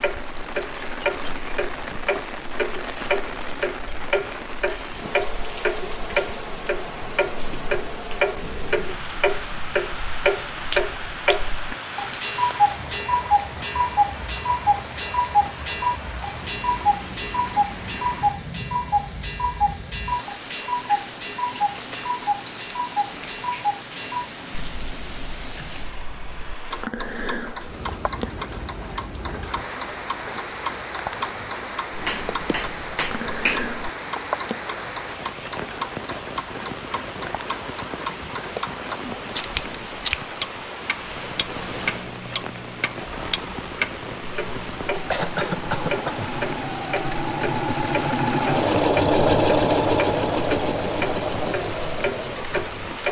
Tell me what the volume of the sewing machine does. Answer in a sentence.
The loudness of the sewing machine goes up, then down.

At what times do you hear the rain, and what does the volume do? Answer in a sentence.
You can hear the rain from 0.0 to 53.0 s, at a steady volume.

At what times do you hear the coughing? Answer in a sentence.
The coughing can be heard from 45.1 to 46.3 s.